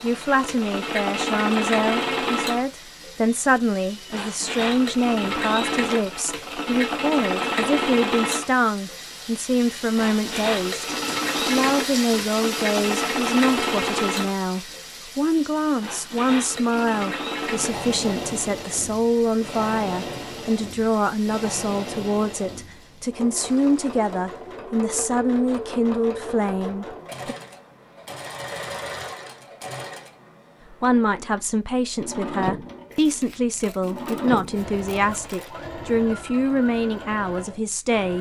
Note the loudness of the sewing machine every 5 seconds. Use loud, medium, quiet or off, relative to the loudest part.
loud, loud, loud, medium, medium, medium, medium, medium.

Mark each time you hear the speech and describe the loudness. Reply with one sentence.
You can hear the speech from 0.0 to 27.4 s, at a steady volume; and from 30.7 to 38.1 s, at a steady volume.